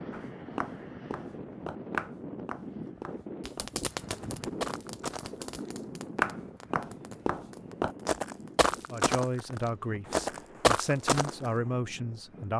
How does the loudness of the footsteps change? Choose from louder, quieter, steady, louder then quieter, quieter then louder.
louder.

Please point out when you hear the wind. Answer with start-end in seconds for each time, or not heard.
0.0-12.5.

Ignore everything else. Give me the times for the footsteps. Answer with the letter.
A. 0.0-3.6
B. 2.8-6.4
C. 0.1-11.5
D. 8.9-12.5
C.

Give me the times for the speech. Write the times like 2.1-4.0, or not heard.
8.9-12.5.